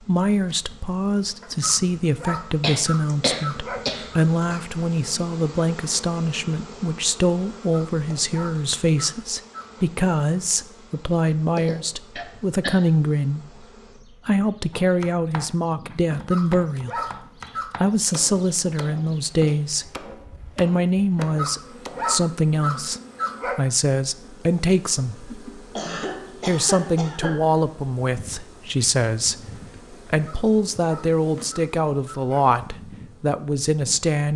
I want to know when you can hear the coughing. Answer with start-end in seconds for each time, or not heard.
2.6-4.5, 11.6-12.8, 25.8-27.6.